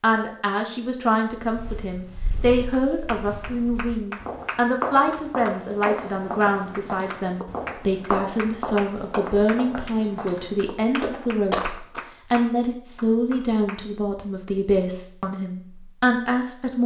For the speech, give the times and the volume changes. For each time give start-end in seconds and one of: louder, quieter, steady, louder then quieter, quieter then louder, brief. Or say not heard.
0.0-16.8 steady.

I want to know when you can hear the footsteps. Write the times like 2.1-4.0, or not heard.
1.4-12.0.